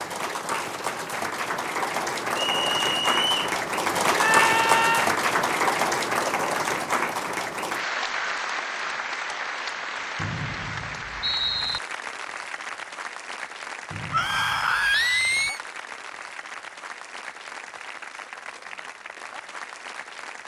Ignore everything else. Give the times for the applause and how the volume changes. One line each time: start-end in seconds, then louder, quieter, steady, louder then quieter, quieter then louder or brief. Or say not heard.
0.0-20.4 quieter.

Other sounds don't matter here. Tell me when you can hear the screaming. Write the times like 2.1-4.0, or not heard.
4.2-5.1, 14.1-15.6.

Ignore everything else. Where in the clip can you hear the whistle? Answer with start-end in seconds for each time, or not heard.
2.4-3.4, 10.2-11.8, 13.9-15.5.